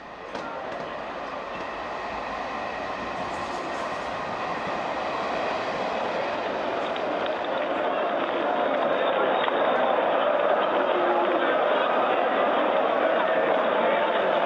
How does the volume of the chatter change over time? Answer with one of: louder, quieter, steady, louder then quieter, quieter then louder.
louder.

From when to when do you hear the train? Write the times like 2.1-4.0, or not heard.
0.0-14.4.